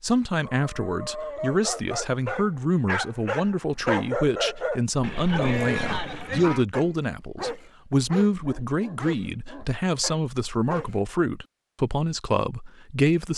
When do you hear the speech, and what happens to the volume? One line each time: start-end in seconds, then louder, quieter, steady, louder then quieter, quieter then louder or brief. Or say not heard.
0.0-13.3 steady.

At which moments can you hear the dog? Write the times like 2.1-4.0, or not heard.
0.4-11.0.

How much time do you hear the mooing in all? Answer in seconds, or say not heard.
2 s.